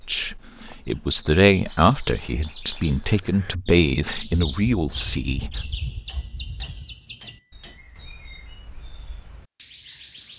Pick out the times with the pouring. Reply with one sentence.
The pouring can't be heard in this clip.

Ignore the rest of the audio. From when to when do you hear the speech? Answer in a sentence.
The speech can be heard from 0.1 to 5.8 s.